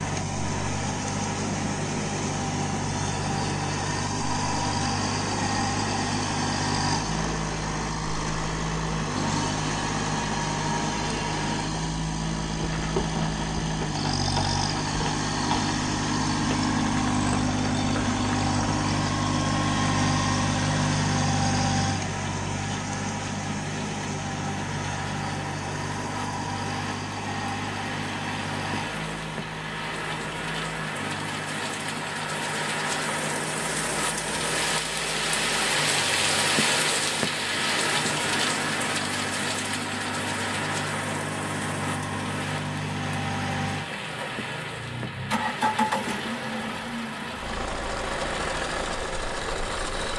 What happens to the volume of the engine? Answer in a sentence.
The volume of the engine goes down, then up.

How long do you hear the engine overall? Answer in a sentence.
The engine can be heard for 50 seconds in total.